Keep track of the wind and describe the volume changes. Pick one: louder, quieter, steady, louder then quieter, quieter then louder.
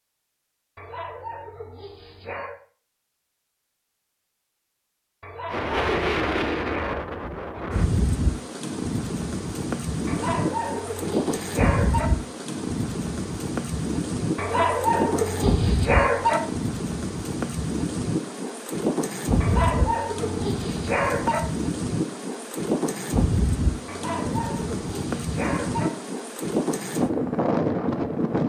steady.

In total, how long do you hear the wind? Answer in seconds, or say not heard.
23 s.